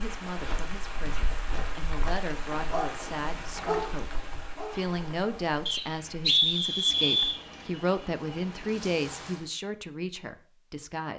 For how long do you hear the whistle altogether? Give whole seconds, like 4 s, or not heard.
2 s.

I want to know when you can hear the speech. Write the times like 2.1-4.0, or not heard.
0.0-11.1.